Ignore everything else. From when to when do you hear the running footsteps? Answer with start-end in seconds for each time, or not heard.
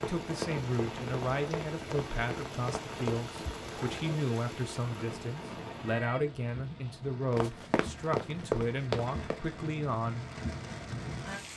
0.0-3.2, 7.3-9.4.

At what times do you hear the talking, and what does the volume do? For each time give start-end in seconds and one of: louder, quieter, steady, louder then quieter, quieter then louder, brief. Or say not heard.
0.0-10.2 steady.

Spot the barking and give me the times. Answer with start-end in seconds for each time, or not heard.
not heard.